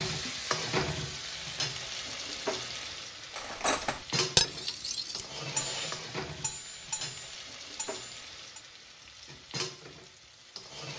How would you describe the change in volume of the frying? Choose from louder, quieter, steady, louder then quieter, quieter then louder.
quieter.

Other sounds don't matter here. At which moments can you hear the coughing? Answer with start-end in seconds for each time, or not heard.
not heard.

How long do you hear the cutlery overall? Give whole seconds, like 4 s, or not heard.
5 s.